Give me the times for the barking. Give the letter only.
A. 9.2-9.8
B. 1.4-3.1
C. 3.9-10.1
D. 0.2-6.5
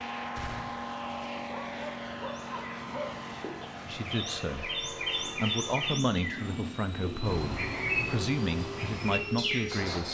B.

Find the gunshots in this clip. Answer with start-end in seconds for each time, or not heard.
0.3-0.8.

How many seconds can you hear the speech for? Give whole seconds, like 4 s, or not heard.
6 s.